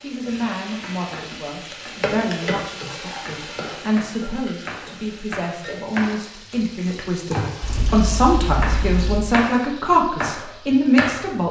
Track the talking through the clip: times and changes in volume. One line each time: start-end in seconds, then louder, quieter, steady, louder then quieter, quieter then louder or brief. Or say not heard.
0.0-11.4 louder.